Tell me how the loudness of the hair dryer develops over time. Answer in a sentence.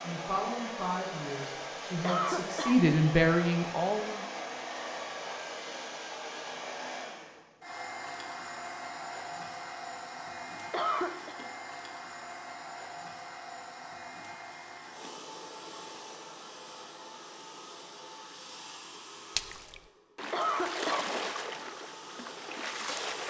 The loudness of the hair dryer goes down.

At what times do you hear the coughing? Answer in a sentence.
The coughing can be heard from 2.0 to 2.8 s, from 10.7 to 11.3 s and from 20.3 to 21.1 s.